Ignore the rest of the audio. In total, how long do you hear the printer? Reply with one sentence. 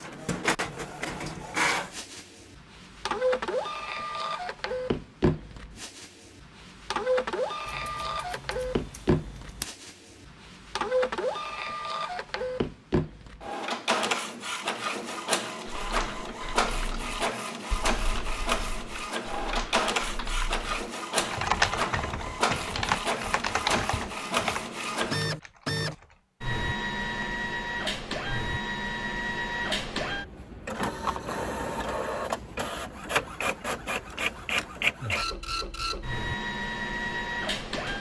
The printer can be heard for 38 seconds in total.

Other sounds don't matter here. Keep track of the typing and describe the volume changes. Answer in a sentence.
The volume of the typing goes up, then down.